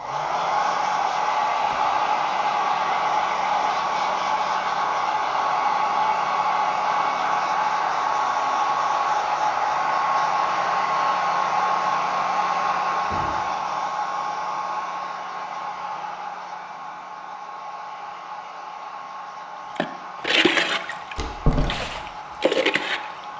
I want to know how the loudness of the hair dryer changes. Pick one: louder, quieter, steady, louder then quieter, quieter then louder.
quieter.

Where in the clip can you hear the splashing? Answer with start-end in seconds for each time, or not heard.
19.8-23.3.